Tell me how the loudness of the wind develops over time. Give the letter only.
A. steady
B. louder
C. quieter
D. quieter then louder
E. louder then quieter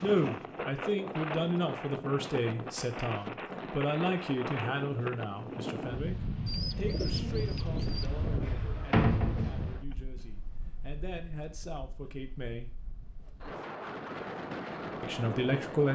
D.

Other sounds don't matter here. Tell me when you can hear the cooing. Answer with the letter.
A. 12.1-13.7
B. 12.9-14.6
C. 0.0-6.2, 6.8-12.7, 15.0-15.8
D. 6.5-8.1
D.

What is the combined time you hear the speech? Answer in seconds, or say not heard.
13 s.